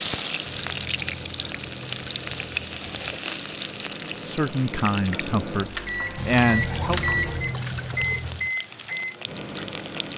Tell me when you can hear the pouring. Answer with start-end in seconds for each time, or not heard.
0.5-3.1, 6.2-8.6.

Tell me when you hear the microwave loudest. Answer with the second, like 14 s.
7 s.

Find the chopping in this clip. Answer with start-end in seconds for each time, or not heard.
not heard.